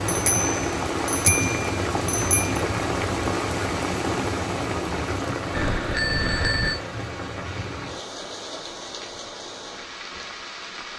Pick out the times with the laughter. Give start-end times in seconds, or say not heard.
not heard.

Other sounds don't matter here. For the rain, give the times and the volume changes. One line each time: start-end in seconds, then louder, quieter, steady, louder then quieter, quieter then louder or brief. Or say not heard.
0.0-10.9 quieter.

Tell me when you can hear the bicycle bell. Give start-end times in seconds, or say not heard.
0.1-2.6, 5.5-6.8.